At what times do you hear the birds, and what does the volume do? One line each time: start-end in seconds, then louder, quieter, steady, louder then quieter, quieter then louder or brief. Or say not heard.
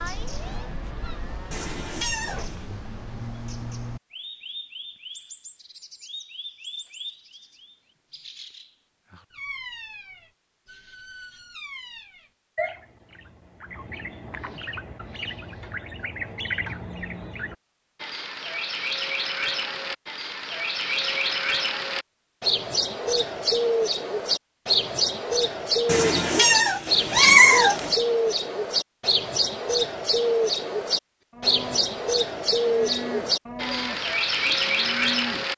0.0-35.5 louder.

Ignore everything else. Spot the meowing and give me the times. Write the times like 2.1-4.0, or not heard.
1.5-2.6, 25.9-27.9.